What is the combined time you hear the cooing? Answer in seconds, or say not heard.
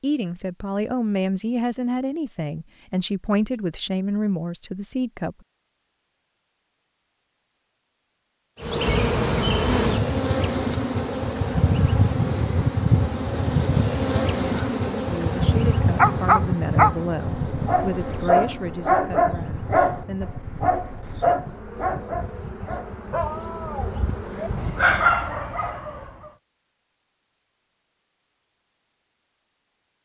not heard.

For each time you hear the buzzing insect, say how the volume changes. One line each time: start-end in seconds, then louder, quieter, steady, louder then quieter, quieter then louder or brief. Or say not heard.
8.6-24.8 quieter.